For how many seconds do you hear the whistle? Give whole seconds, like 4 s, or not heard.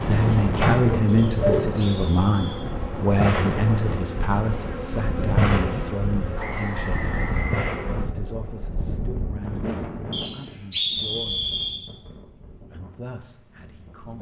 5 s.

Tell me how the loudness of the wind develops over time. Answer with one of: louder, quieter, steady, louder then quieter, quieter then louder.
quieter.